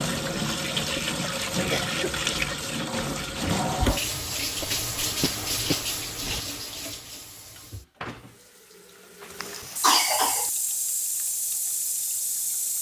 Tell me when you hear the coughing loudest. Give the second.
10 s.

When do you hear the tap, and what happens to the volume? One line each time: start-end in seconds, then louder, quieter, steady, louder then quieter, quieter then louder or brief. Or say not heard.
0.0-12.7 quieter then louder.